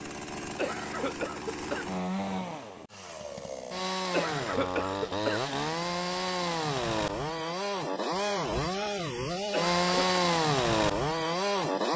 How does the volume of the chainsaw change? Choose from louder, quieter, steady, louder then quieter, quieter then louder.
louder.